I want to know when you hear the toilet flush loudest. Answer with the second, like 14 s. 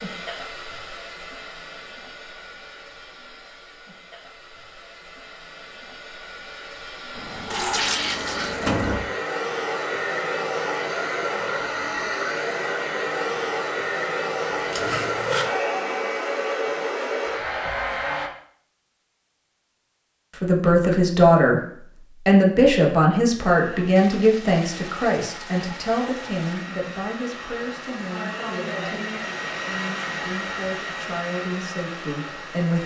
8 s.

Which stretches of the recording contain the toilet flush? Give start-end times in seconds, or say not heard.
7.2-9.2, 14.7-15.6, 23.9-26.7.